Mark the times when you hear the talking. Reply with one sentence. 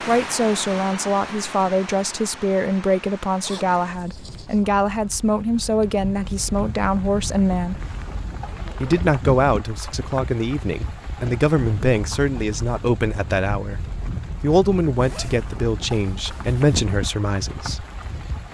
You can hear the talking from 0.1 to 7.8 s and from 8.8 to 17.9 s.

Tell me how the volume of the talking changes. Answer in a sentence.
The volume of the talking stays about the same.